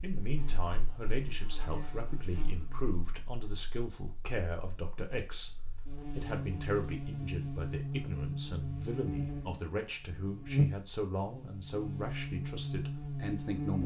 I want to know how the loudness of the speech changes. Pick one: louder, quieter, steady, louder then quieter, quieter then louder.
steady.